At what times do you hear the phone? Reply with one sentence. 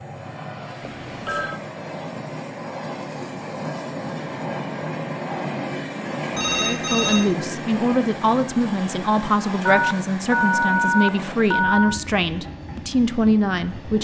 You can hear the phone from 0.8 to 1.6 s, from 6.3 to 7.3 s and from 9.7 to 12.0 s.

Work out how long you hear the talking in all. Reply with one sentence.
The talking can be heard for 7 seconds in total.